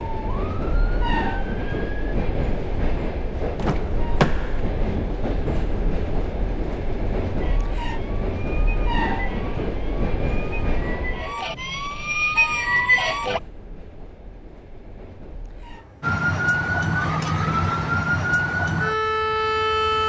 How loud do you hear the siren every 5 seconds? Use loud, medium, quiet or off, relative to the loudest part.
quiet, quiet, loud, loud.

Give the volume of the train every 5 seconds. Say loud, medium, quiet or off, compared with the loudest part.
loud, loud, medium, quiet.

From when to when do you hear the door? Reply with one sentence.
You can hear the door from 3.5 to 4.6 s.